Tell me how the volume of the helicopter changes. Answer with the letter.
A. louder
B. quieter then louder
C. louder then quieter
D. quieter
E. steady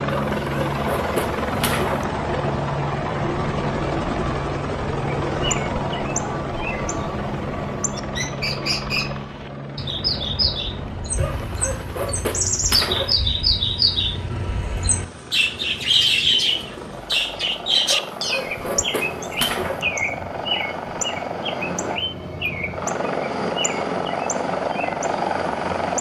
B.